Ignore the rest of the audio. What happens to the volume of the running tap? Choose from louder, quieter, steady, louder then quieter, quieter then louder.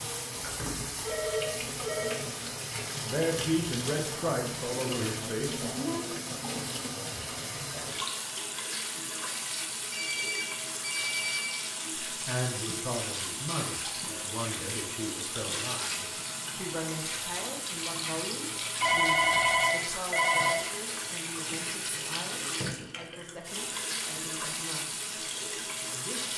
steady.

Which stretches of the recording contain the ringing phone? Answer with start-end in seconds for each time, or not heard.
0.3-2.1, 9.9-11.6, 18.8-20.6.